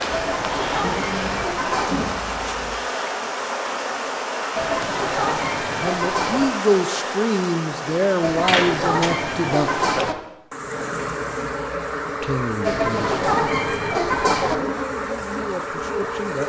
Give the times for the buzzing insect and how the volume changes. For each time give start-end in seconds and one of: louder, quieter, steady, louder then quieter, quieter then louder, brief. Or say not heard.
0.0-16.4 steady.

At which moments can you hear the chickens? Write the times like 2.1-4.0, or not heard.
0.1-2.0, 4.5-6.5, 8.2-10.2, 12.6-14.6.